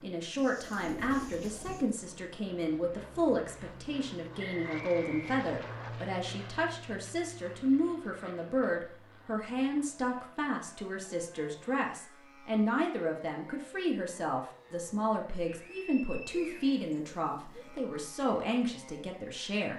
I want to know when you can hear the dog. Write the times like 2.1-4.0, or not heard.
not heard.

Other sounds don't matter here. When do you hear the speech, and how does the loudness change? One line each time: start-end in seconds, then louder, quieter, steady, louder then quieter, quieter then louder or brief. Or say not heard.
0.0-19.7 steady.